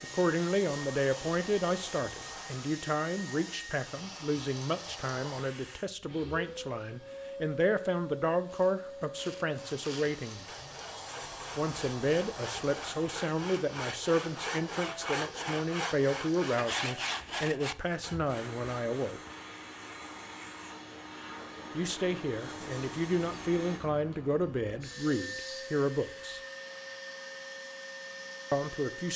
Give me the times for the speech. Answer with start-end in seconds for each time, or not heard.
0.0-10.4, 11.6-19.2, 21.7-26.4, 28.5-29.1.